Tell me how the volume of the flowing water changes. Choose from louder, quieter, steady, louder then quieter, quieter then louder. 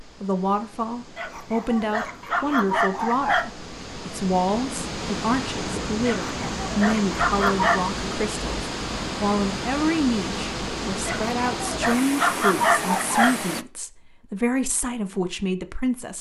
louder.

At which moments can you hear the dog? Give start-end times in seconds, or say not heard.
1.1-3.5, 6.0-7.8, 11.1-13.3.